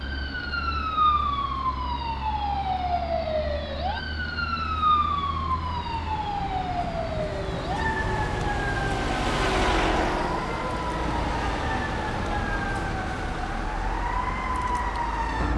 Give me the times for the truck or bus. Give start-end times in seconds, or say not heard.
0.0-15.5.